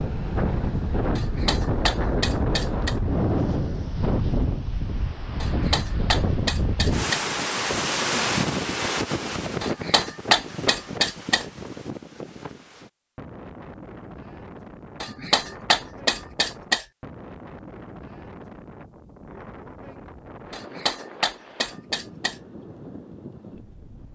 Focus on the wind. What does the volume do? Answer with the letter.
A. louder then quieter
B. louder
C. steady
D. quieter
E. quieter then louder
D.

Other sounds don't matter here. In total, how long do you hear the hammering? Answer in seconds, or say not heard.
9 s.